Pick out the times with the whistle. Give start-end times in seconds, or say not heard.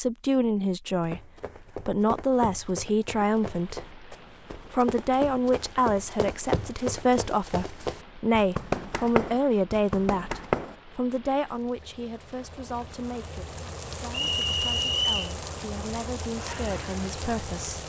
14.1-15.3.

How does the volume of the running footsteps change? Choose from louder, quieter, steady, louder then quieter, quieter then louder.
louder.